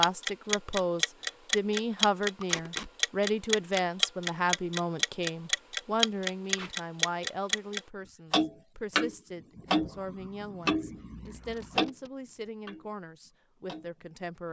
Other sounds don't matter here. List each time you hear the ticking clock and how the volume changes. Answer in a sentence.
You can hear the ticking clock from 0.0 to 14.4 s, getting quieter.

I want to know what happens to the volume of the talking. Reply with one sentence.
The volume of the talking goes down.